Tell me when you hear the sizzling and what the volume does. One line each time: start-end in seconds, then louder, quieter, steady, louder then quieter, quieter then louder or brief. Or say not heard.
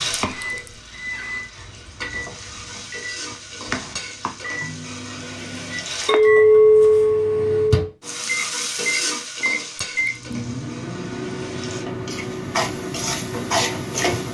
0.0-6.2 louder
8.0-14.2 quieter then louder.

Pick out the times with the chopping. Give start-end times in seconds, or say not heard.
0.0-4.4.